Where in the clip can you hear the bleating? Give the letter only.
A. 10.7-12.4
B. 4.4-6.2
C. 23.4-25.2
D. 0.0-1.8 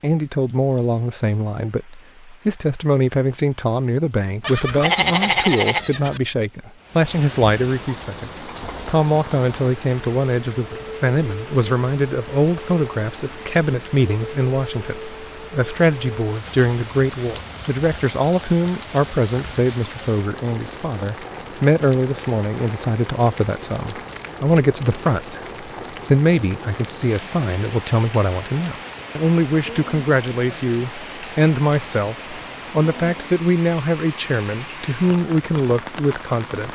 B.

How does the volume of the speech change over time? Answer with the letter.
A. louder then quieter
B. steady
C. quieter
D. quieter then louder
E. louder
B.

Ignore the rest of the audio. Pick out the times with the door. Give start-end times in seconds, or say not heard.
not heard.